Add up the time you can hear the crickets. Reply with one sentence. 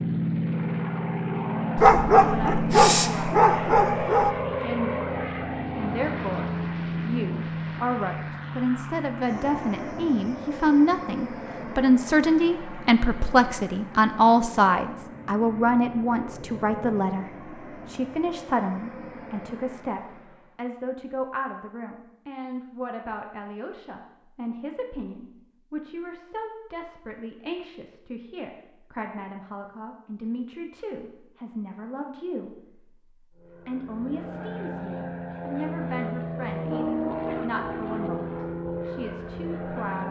You can't hear the crickets here.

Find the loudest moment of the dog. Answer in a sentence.
The loudest moment of the dog is at 2 seconds.